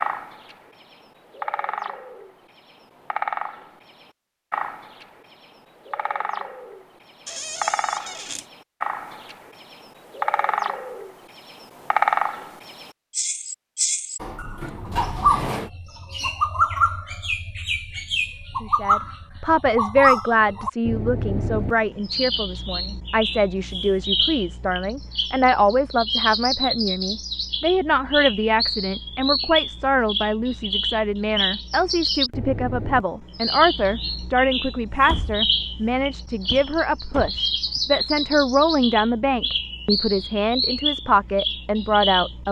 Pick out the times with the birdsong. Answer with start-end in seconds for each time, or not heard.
0.0-42.4.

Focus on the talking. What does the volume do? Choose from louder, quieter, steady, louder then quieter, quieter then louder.
steady.